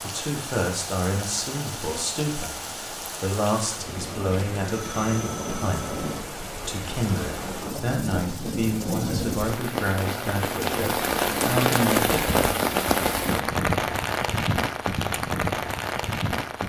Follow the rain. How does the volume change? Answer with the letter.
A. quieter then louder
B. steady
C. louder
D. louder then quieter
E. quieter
C.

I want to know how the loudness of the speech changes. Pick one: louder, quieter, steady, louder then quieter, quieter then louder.
steady.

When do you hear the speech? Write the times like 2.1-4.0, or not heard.
0.0-12.4.